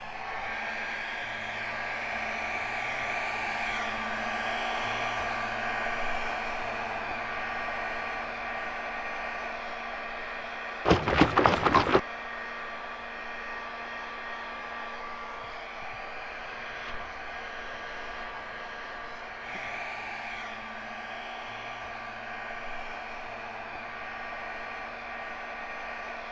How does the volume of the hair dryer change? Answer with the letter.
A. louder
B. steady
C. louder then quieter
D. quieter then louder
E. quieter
E.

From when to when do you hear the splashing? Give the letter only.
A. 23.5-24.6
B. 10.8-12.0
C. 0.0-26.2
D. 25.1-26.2
B.